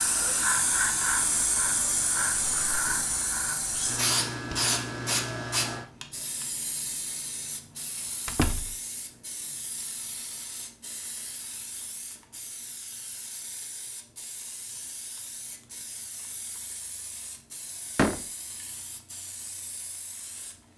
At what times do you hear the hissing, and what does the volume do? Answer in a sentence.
The hissing can be heard from 0.0 to 20.7 s, getting quieter.